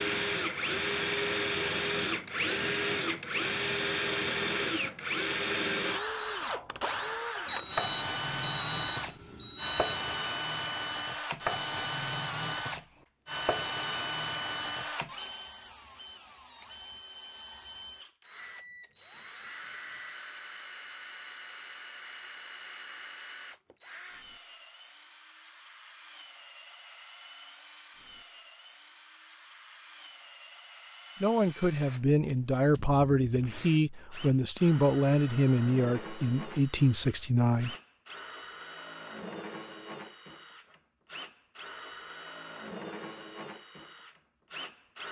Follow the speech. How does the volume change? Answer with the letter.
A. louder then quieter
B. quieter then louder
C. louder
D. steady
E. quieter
D.